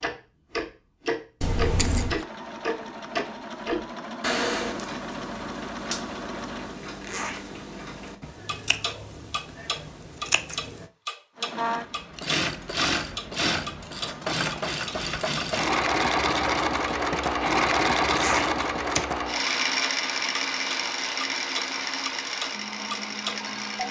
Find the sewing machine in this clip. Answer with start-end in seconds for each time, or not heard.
2.0-6.8, 11.3-23.8.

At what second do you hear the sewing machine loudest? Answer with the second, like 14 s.
18 s.